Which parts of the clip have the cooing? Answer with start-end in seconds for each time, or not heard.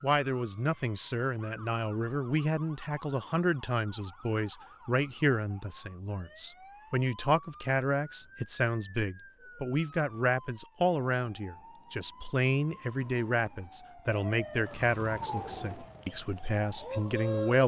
15.3-17.6.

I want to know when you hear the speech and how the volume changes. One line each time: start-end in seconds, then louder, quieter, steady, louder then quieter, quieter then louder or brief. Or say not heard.
0.0-17.6 steady.